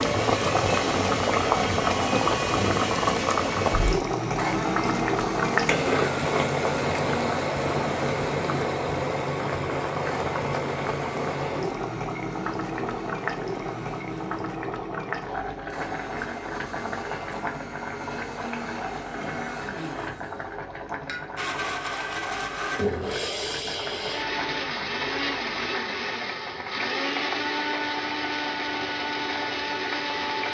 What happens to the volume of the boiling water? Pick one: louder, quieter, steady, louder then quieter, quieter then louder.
quieter.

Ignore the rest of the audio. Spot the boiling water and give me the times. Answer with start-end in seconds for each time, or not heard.
0.0-30.4.